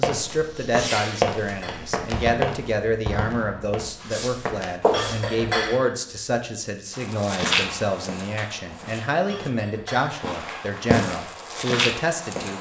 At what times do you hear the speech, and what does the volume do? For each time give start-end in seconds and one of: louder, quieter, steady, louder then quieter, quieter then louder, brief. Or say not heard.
0.0-12.5 steady.